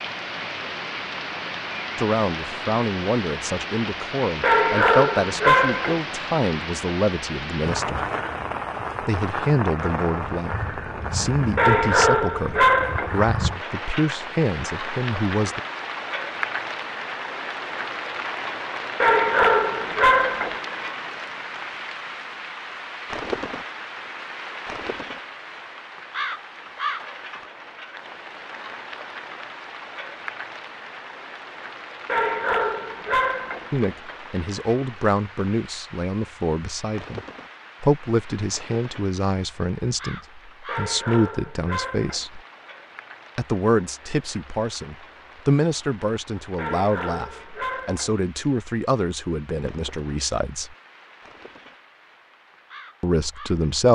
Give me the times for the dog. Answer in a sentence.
You can hear the dog from 4.4 to 6.0 s, from 11.6 to 13.2 s, from 19.0 to 20.6 s, from 32.0 to 33.7 s, from 40.6 to 42.2 s and from 46.5 to 48.1 s.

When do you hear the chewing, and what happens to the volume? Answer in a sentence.
You can't hear the chewing here.